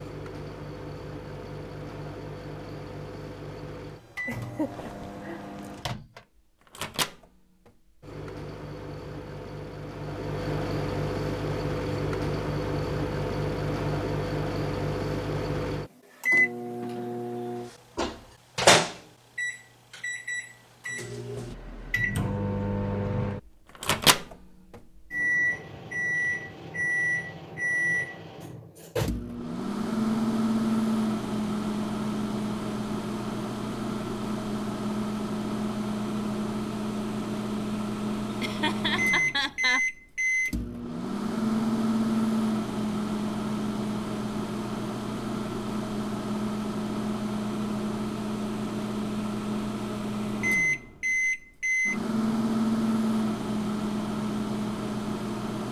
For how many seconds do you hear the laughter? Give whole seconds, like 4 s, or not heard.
3 s.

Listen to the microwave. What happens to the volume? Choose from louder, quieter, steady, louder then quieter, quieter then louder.
louder.